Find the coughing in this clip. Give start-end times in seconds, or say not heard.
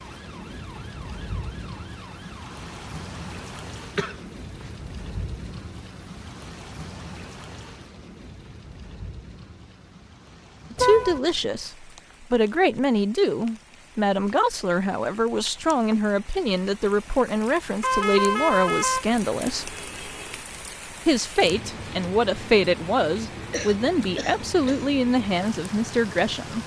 3.8-4.7, 23.5-24.9.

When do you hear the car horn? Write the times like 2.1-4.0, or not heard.
10.8-11.2, 17.8-20.4.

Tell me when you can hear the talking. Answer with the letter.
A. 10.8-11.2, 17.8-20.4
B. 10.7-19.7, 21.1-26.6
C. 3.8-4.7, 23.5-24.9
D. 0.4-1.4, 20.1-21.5
B.